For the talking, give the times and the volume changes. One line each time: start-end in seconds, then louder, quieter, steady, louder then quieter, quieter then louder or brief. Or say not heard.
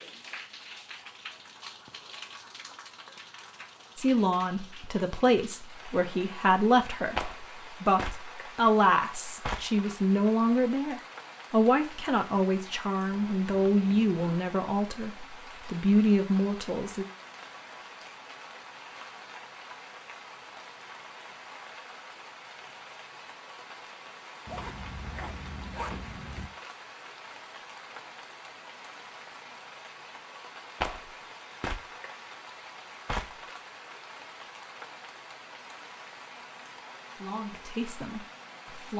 4.0-17.1 steady
37.1-38.9 brief.